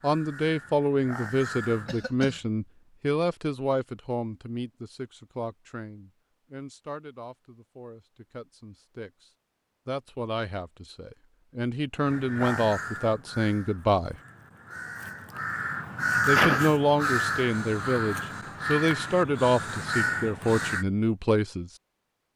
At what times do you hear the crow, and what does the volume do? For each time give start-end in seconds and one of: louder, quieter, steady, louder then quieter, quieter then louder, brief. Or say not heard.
0.0-2.0 brief
12.1-20.9 louder then quieter.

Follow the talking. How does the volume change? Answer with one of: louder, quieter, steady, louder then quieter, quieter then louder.
quieter then louder.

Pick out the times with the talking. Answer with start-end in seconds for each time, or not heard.
0.0-14.2, 16.2-21.7.